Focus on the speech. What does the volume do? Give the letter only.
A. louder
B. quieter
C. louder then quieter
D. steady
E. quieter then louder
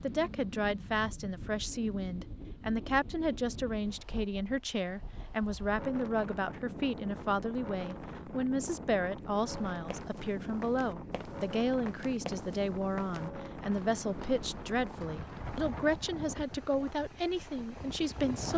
D.